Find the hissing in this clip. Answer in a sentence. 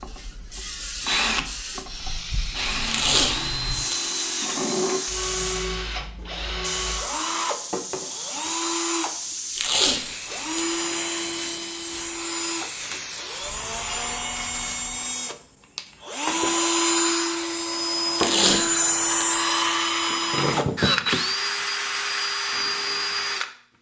The hissing can be heard from 0.0 to 15.2 s.